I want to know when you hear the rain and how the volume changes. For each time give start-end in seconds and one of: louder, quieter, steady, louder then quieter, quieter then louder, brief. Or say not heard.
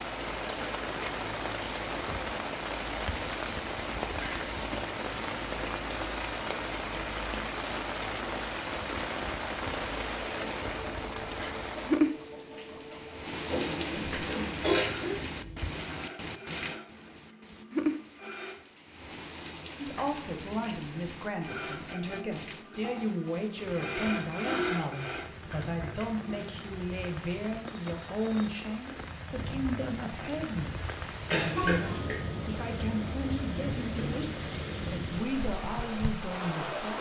0.0-36.9 quieter then louder.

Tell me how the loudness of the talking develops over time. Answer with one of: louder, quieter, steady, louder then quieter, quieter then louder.
steady.